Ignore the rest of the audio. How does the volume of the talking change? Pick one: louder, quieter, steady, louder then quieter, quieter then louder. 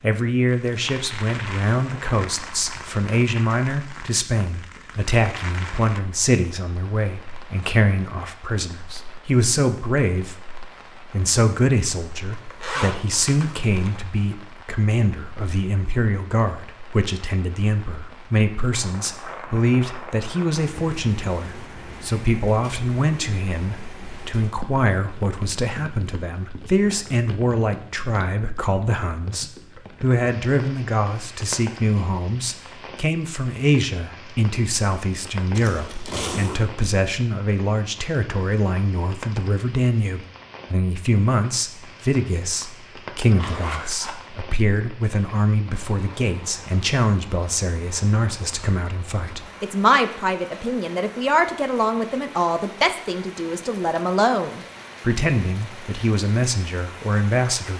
steady.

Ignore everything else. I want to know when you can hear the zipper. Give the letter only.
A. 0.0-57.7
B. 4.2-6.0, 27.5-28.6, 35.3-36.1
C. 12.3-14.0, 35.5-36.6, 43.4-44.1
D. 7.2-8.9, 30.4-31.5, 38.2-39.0
C.